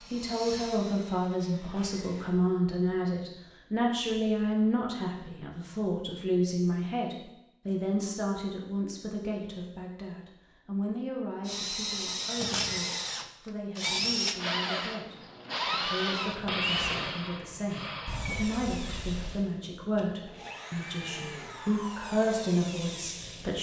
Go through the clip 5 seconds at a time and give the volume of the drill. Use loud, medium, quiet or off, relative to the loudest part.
quiet, off, loud, loud, medium.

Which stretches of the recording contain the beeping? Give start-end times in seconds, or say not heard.
18.1-19.4.